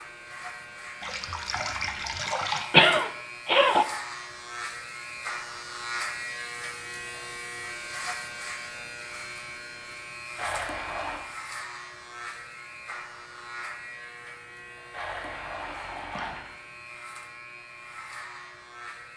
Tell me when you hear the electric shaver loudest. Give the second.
6 s.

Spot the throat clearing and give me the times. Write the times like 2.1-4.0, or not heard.
2.7-3.9.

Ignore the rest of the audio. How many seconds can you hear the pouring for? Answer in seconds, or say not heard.
4 s.